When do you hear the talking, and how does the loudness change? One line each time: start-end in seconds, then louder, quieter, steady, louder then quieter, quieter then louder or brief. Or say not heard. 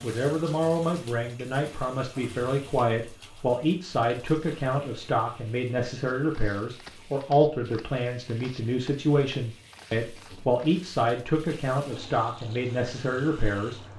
0.0-13.8 steady.